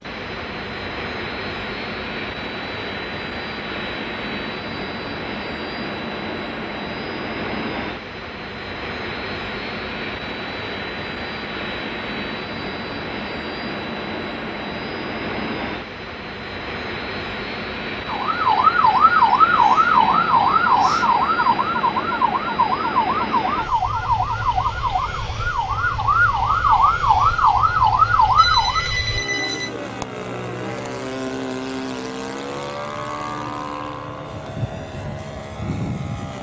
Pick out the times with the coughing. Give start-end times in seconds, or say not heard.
not heard.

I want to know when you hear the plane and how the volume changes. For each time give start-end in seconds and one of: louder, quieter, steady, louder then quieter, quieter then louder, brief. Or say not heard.
0.0-36.3 steady.